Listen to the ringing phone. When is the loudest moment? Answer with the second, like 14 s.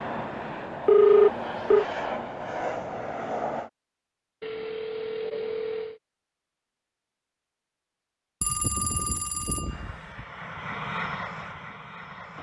1 s.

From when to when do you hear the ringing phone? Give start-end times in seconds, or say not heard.
0.8-1.9, 4.4-6.0, 8.4-10.2.